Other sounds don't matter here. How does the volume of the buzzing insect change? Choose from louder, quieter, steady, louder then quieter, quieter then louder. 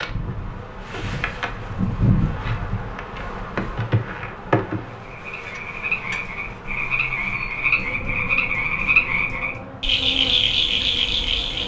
quieter.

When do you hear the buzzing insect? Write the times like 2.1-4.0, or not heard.
0.0-11.6.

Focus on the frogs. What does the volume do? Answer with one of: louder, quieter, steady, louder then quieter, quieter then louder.
louder.